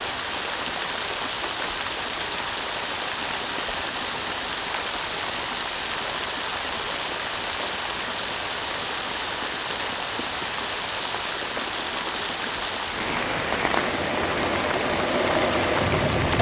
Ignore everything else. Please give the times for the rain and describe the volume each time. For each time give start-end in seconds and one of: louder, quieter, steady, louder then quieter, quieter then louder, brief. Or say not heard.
0.0-16.3 steady.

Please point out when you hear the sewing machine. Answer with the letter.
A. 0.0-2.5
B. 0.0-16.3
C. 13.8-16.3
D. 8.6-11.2
C.